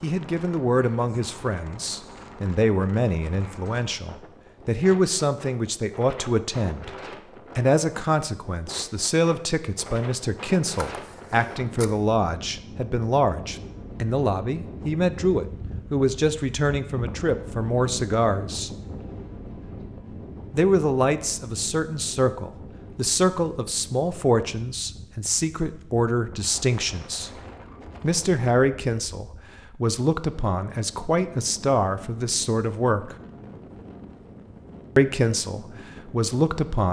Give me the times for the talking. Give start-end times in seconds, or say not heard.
0.0-7.0, 7.5-18.7, 20.5-27.3, 28.0-33.1, 35.0-36.8.